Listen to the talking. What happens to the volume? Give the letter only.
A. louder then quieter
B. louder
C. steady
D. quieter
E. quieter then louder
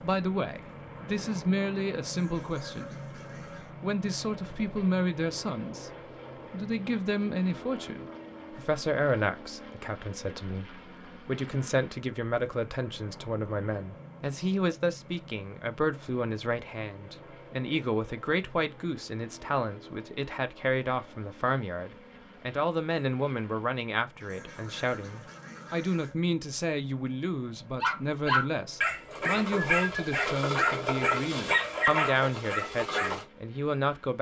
C.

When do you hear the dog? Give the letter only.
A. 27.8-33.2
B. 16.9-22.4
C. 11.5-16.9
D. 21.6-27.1
A.